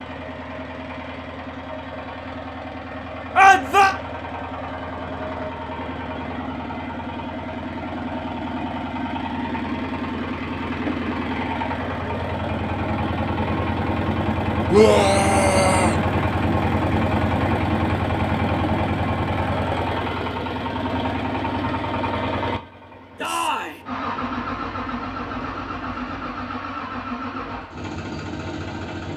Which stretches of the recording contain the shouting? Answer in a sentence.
The shouting can be heard from 3.4 to 4.0 s, from 14.7 to 16.0 s and from 23.1 to 23.8 s.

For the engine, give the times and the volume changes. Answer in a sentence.
The engine can be heard from 0.0 to 29.1 s, getting louder then quieter.